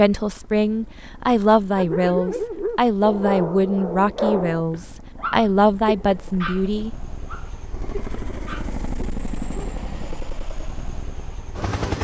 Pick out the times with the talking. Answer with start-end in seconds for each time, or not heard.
0.0-6.9.